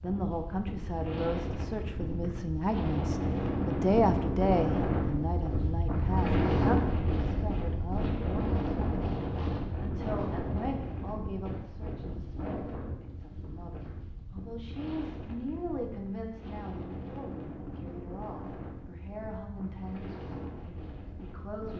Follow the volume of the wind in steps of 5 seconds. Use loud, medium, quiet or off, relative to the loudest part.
loud, loud, medium, quiet, quiet.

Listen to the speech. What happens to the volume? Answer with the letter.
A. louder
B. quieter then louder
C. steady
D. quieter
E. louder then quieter
D.